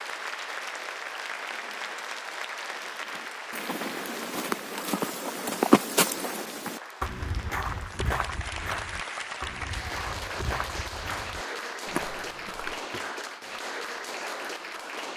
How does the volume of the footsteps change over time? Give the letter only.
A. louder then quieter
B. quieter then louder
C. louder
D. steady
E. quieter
A.